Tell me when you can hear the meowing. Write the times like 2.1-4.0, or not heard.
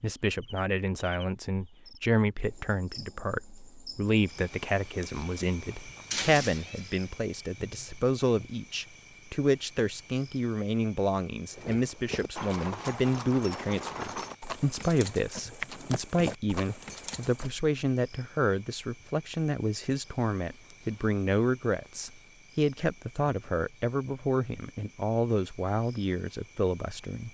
6.1-7.0.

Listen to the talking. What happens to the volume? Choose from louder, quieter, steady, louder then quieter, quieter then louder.
steady.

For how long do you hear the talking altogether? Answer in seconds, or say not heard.
27 s.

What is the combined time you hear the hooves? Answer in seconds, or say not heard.
6 s.